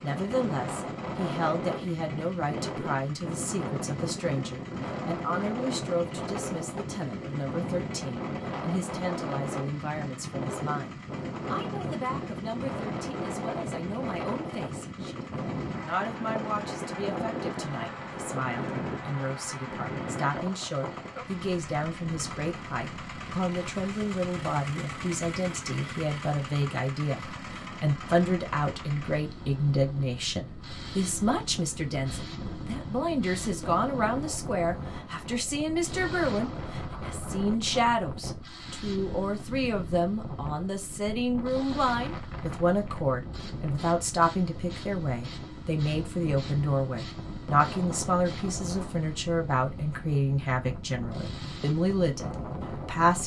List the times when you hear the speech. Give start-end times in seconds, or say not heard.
0.0-53.2.